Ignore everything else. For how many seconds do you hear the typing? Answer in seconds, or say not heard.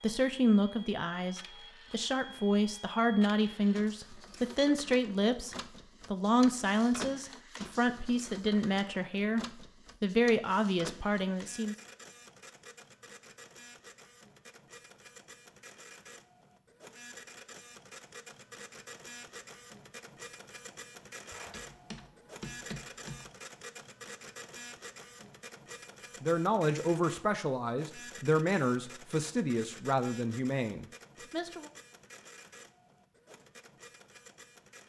2 s.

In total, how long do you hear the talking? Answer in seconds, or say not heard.
17 s.